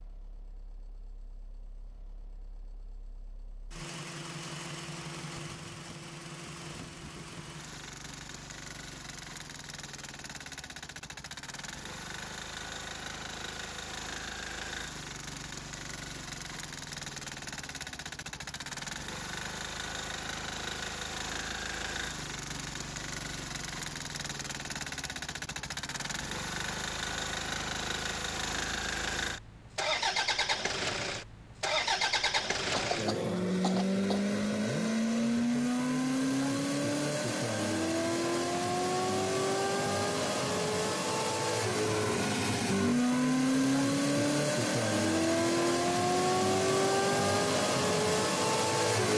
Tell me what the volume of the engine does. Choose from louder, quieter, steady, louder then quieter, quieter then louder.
louder.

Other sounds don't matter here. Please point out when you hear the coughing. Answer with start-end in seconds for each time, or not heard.
32.7-34.4.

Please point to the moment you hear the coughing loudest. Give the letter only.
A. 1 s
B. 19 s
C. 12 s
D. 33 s
D.